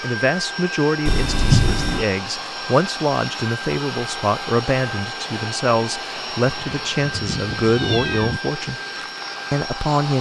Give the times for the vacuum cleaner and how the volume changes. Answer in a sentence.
The vacuum cleaner can be heard from 0.0 to 10.1 s, at a steady volume.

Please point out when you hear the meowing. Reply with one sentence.
You can hear the meowing from 1.1 to 2.0 s and from 6.5 to 8.4 s.